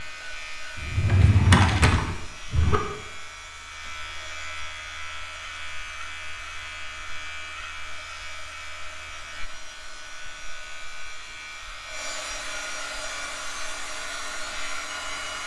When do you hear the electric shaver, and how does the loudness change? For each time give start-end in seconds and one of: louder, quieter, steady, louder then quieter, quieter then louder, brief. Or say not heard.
0.0-15.4 steady.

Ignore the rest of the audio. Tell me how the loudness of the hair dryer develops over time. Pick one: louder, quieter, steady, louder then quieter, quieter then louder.
louder.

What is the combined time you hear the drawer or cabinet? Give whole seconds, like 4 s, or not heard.
2 s.